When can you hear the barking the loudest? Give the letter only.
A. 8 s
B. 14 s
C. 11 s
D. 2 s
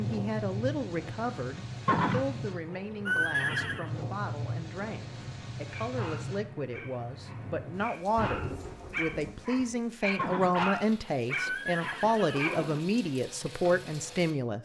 C.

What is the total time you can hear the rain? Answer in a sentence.
You can hear the rain for 14 seconds altogether.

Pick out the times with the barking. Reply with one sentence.
The barking can be heard from 5.7 to 12.6 s.